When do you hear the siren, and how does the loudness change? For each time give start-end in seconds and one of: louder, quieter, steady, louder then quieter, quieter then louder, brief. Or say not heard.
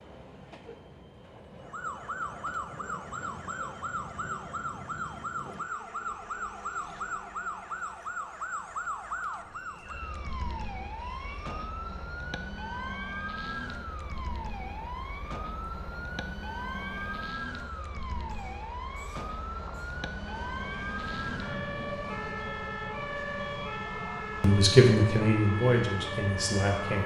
1.6-27.0 steady.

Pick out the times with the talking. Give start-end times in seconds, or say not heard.
24.4-27.0.